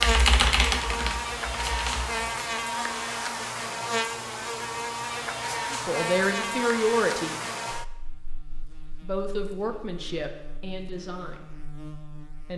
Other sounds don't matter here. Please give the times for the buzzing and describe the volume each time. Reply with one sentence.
You can hear the buzzing from 0.0 to 12.5 s, getting quieter.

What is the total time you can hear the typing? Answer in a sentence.
You can hear the typing for 2 seconds altogether.